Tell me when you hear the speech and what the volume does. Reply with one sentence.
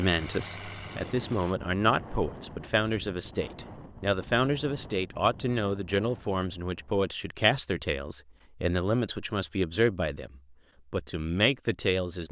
The speech can be heard from 0.0 to 12.2 s, at a steady volume.